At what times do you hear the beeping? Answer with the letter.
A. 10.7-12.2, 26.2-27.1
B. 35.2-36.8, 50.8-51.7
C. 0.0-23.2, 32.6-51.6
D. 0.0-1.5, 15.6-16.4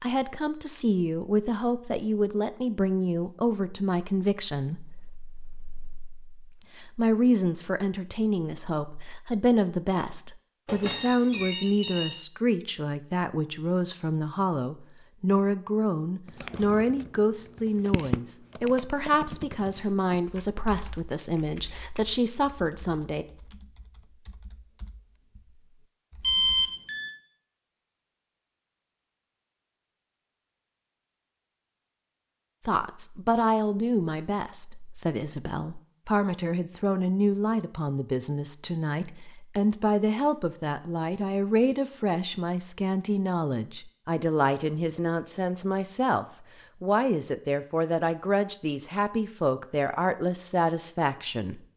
A.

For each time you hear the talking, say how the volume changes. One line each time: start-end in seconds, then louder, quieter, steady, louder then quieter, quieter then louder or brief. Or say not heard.
0.0-23.2 steady
32.6-51.6 steady.